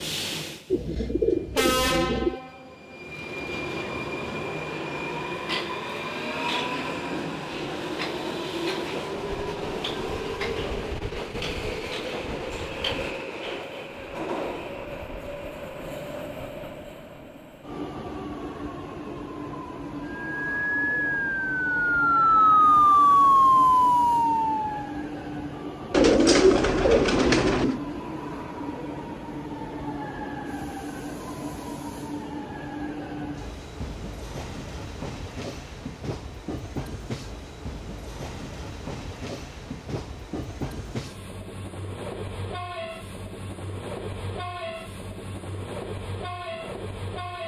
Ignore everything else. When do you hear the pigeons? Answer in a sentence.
The pigeons can be heard from 0.7 to 2.4 s and from 25.9 to 27.8 s.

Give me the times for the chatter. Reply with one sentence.
You can't hear the chatter here.